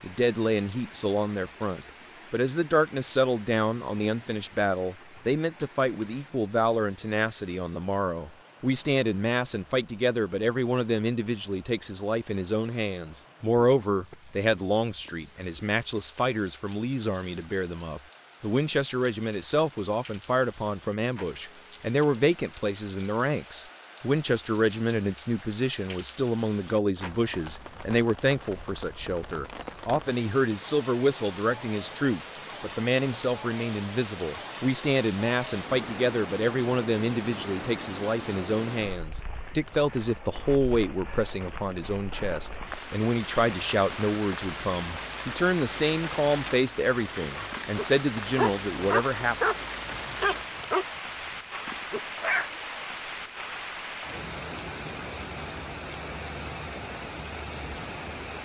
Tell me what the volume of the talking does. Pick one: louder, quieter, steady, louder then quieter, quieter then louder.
steady.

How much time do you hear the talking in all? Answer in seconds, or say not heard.
49 s.